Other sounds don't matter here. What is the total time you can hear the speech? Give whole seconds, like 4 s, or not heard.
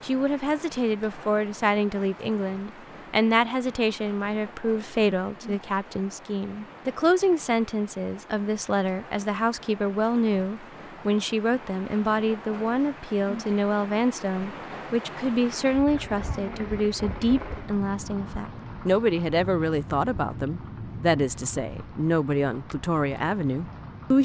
24 s.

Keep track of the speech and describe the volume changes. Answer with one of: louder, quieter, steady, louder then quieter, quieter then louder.
steady.